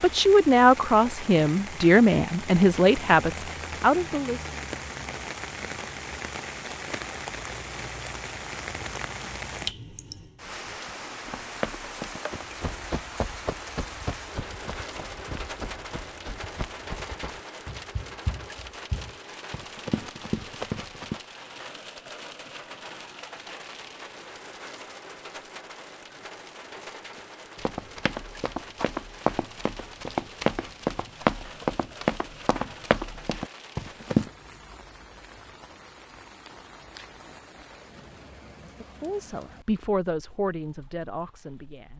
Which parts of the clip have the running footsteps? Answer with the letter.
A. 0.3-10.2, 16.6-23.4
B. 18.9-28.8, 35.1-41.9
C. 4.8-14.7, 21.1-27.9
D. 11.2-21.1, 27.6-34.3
D.